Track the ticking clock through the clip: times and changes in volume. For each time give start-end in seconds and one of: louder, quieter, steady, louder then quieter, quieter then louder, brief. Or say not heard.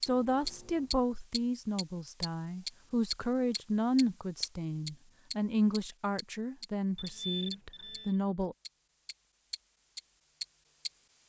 0.0-8.0 quieter
8.6-11.2 brief.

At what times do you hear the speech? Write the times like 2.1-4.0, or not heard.
0.0-8.6.